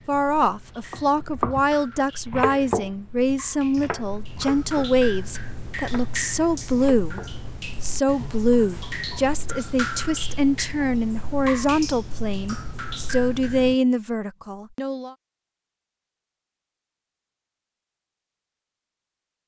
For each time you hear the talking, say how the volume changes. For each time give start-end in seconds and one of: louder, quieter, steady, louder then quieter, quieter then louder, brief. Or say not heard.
0.1-15.2 steady.